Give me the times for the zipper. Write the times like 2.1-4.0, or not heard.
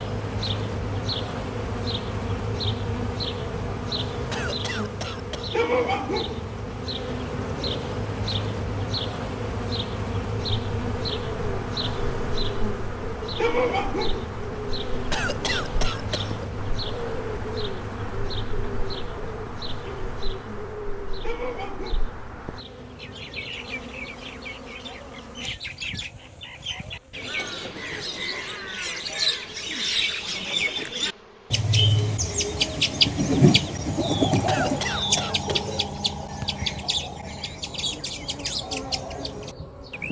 not heard.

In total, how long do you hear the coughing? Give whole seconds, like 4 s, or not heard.
4 s.